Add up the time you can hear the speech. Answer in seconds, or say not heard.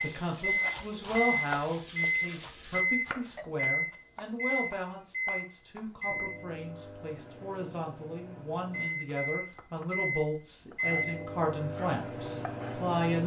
13 s.